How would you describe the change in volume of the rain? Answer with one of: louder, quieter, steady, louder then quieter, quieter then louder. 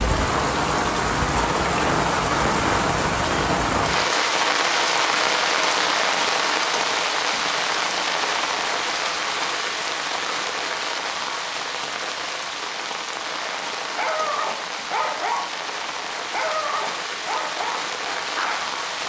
quieter.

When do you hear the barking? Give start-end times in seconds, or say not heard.
13.9-18.7.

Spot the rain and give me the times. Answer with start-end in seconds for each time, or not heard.
0.0-19.0.